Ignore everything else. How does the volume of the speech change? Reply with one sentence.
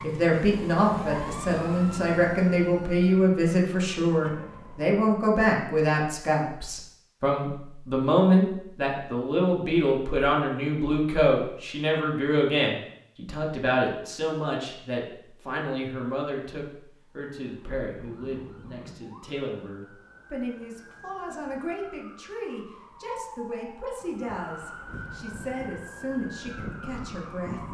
The loudness of the speech goes down.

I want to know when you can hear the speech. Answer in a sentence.
You can hear the speech from 0.0 to 27.6 s.